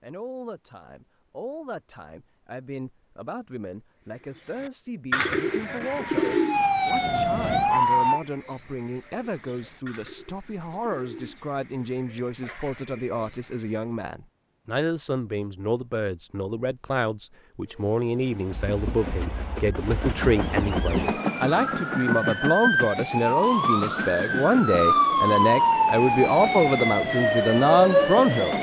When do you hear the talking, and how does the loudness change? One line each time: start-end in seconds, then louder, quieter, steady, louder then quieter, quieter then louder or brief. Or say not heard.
0.0-28.5 louder.